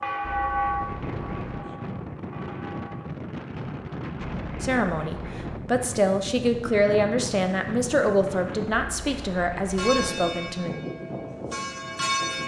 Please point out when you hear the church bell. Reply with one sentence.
You can hear the church bell from 0.0 to 3.0 s and from 9.7 to 12.4 s.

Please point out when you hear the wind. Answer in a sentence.
The wind can be heard from 0.0 to 12.4 s.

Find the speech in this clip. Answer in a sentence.
You can hear the speech from 4.6 to 10.7 s.